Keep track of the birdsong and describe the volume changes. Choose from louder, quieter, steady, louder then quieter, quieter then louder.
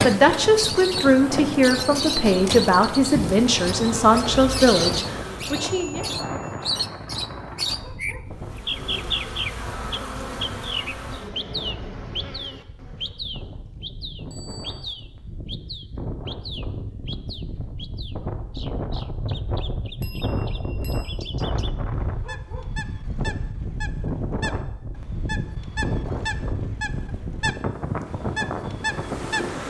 quieter then louder.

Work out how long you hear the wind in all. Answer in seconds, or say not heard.
29 s.